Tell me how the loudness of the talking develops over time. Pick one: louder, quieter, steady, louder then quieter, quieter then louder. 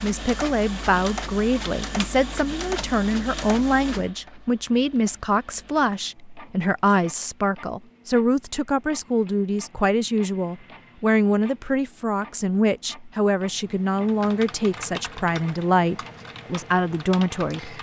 steady.